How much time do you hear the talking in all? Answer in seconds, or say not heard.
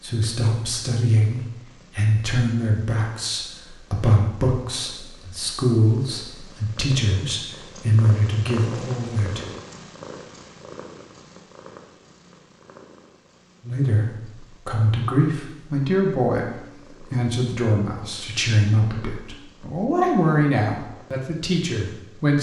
18 s.